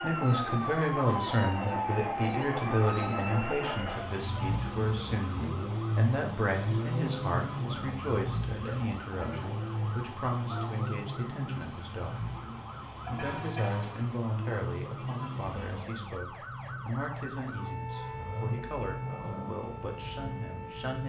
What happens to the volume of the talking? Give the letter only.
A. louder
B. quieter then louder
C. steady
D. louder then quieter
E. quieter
E.